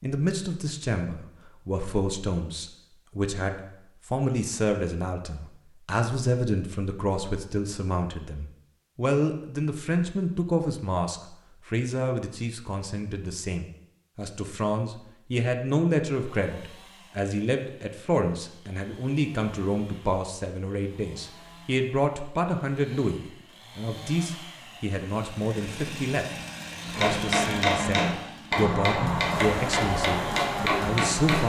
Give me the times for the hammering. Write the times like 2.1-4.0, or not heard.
26.9-31.4.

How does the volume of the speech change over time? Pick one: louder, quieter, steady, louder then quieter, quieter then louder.
steady.